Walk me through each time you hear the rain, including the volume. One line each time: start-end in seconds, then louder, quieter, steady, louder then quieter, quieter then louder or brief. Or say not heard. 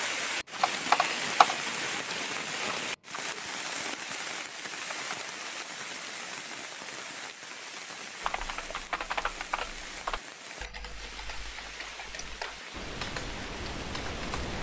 0.0-14.5 quieter.